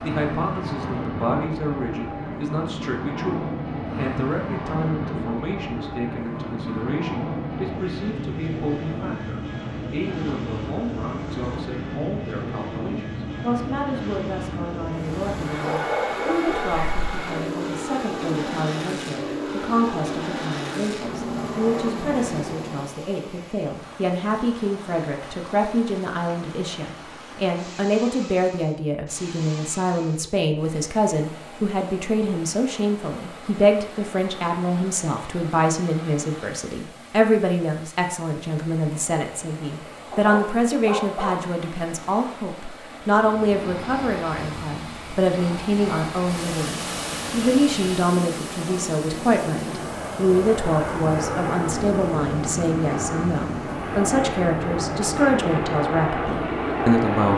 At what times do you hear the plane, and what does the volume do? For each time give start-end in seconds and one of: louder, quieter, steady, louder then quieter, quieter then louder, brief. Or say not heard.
0.0-22.9 steady
43.2-57.3 louder.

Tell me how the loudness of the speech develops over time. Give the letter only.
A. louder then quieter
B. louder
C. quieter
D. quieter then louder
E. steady
B.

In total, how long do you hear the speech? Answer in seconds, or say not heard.
57 s.